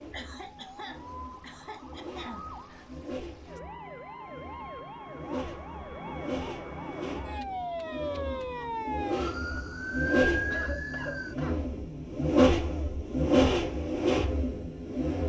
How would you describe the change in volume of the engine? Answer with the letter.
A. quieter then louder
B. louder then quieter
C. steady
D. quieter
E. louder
E.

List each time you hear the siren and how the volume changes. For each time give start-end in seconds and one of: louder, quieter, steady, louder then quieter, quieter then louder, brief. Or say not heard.
0.0-11.3 louder.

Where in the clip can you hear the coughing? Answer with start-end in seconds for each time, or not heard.
0.1-2.5, 10.5-11.6.